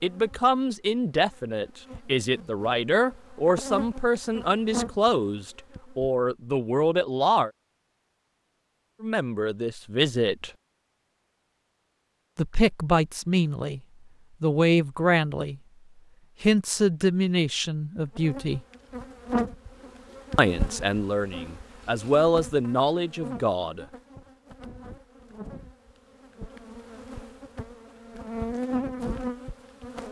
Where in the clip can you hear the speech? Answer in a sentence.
The speech can be heard from 0.0 to 7.5 s, from 9.0 to 10.5 s, from 12.3 to 13.8 s, from 14.4 to 15.6 s, from 16.4 to 18.6 s and from 20.4 to 23.9 s.